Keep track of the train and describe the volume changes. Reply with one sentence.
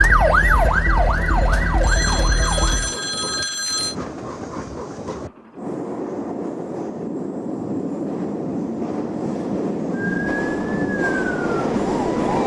The volume of the train goes up.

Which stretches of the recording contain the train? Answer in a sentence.
You can hear the train from 0.2 to 12.4 s.